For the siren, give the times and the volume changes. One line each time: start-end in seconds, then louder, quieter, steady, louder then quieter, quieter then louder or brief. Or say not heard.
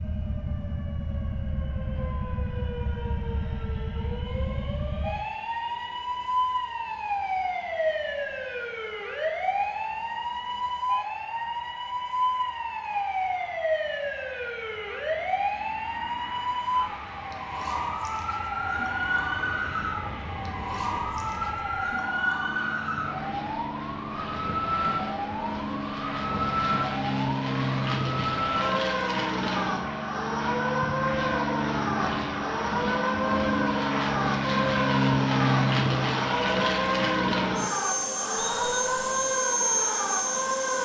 0.0-40.8 steady.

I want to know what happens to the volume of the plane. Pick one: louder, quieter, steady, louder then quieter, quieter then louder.
louder.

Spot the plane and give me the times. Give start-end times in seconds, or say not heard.
0.0-40.8.